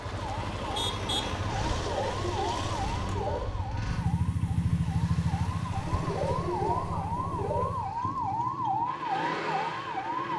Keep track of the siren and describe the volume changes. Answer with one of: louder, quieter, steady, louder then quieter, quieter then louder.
quieter then louder.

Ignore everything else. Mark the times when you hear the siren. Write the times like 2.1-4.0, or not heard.
0.0-10.3.